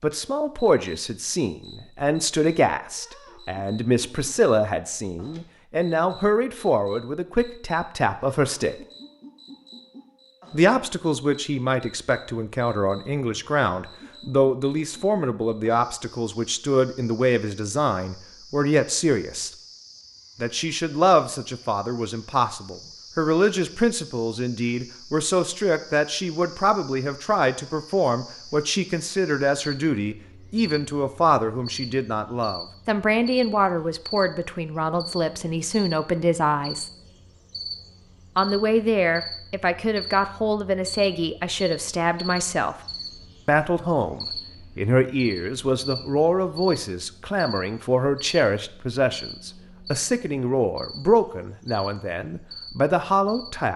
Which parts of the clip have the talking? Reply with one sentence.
The talking can be heard from 0.0 to 8.8 s, from 10.5 to 19.5 s, from 20.4 to 36.9 s, from 38.4 to 42.8 s and from 43.5 to 53.7 s.